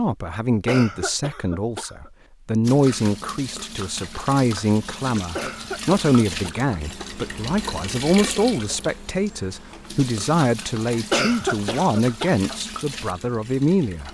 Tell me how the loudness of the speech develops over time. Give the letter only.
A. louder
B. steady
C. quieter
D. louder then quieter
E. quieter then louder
B.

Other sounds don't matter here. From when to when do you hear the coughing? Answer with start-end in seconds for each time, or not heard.
0.7-2.1, 5.3-7.1, 11.1-12.3.